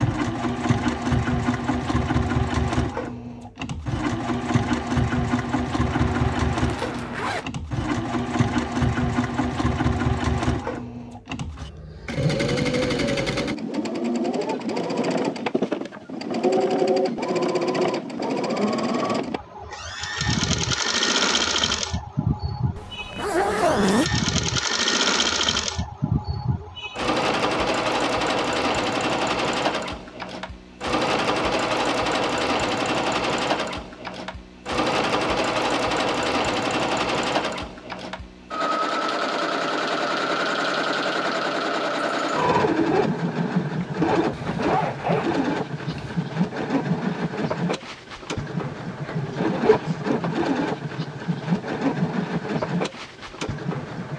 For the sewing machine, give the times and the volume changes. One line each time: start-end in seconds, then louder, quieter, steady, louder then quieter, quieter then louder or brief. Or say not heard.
0.0-54.1 steady.